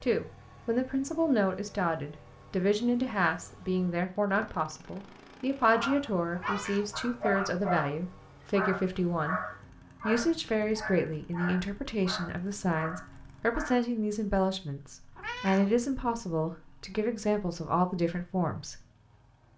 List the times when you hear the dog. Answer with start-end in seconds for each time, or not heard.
5.7-13.8.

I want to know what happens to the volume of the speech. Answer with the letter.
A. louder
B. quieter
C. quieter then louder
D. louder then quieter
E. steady
E.